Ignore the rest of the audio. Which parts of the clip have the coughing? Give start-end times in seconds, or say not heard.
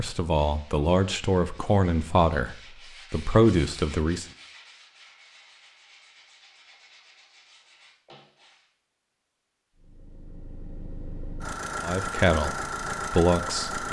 not heard.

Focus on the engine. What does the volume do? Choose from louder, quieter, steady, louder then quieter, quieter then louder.
louder.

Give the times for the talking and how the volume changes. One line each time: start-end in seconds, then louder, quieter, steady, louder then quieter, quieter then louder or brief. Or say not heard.
0.0-4.2 quieter then louder
11.8-13.8 brief.